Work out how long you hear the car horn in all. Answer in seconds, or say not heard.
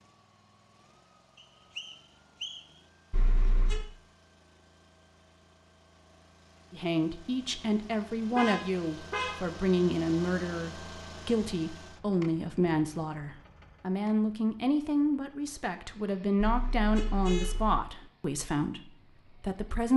3 s.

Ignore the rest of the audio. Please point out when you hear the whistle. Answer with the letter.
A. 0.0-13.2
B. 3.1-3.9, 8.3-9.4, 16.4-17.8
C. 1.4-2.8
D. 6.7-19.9
C.